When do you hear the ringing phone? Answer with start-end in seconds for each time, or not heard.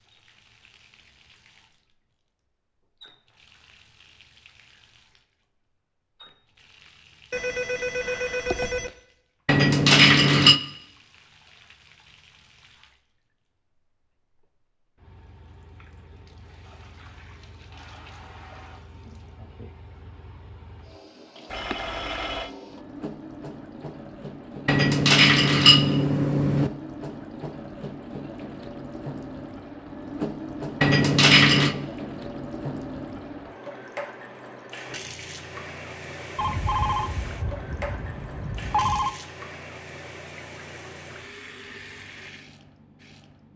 7.3-8.9, 21.5-22.5, 36.4-39.1.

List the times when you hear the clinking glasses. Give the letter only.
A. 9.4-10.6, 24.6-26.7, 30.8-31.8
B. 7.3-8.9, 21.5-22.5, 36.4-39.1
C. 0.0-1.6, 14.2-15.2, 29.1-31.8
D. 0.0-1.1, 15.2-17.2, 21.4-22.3
A.